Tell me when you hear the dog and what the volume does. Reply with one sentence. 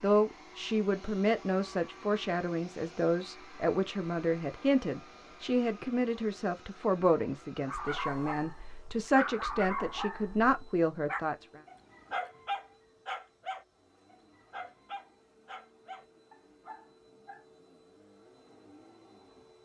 The dog can be heard from 7.6 to 17.4 s, getting quieter.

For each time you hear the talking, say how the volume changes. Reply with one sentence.
You can hear the talking from 0.0 to 11.6 s, at a steady volume.